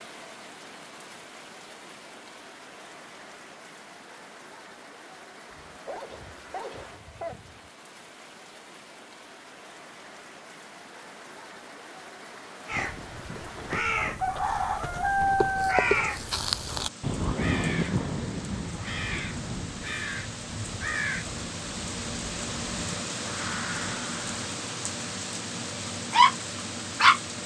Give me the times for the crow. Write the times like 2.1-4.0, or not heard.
12.7-24.4.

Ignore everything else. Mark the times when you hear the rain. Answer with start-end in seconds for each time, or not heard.
0.0-27.4.